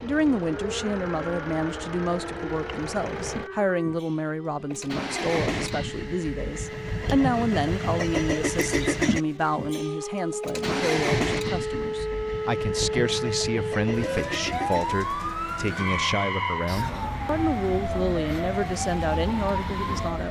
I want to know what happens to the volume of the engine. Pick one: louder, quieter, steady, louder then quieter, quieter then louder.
louder then quieter.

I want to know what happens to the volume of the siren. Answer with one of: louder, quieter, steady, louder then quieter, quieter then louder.
louder.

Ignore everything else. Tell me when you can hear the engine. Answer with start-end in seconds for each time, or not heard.
0.0-20.2.